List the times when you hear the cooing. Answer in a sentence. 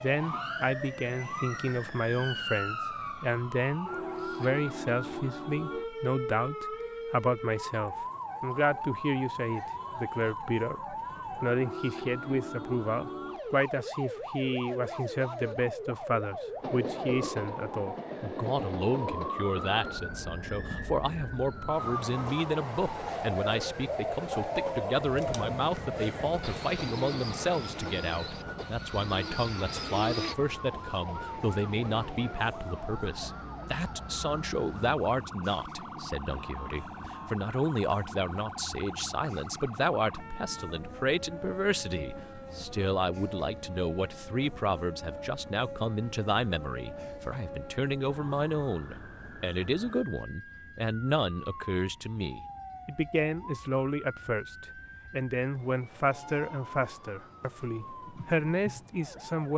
The cooing can be heard from 23.4 to 30.4 s.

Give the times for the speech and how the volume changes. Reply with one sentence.
You can hear the speech from 0.0 to 59.5 s, at a steady volume.